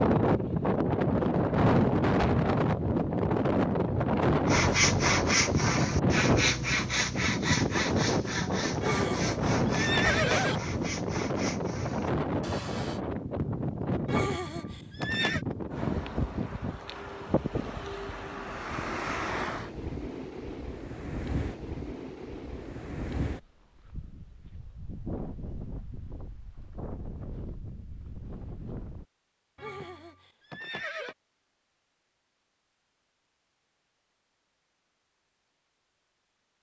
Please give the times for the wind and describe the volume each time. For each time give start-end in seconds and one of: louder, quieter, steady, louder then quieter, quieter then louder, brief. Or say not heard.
0.0-29.1 quieter.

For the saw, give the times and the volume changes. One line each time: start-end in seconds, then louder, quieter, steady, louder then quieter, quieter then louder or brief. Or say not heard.
4.5-13.0 quieter.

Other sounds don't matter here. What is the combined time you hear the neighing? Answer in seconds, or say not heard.
5 s.